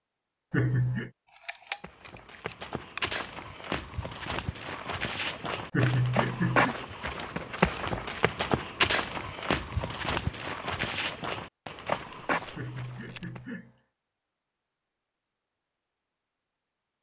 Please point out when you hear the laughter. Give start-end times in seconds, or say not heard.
0.5-1.1, 5.7-6.8, 12.6-13.8.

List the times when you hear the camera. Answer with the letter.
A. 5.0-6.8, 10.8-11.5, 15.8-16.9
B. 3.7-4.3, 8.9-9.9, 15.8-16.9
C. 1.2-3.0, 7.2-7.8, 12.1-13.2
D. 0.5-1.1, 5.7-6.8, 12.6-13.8
C.